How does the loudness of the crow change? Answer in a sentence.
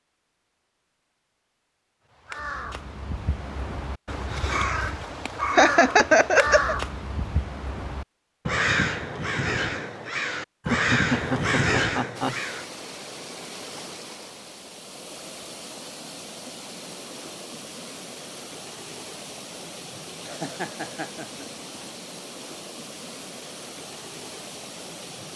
The loudness of the crow goes up.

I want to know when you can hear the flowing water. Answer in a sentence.
You can hear the flowing water from 12.2 to 25.3 s.